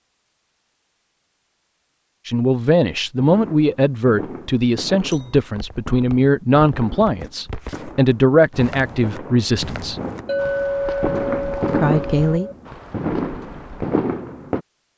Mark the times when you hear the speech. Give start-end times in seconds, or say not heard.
2.2-10.0, 11.7-12.5.